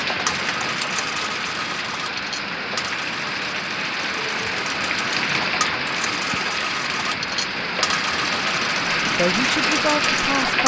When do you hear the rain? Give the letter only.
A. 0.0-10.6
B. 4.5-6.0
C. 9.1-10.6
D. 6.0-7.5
A.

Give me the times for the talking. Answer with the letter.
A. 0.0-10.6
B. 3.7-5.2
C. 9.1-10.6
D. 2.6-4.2
C.